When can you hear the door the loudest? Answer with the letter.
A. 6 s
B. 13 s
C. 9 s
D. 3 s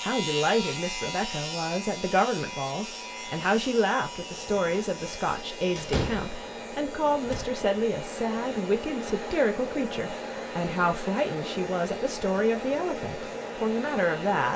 A.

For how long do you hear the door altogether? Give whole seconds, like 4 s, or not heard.
2 s.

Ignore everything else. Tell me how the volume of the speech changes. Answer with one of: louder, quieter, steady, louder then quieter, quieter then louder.
steady.